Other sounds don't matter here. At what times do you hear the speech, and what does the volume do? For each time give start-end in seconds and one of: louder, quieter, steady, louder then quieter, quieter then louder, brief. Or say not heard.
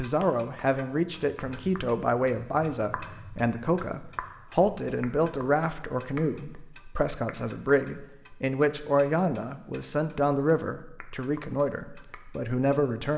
0.0-13.1 steady.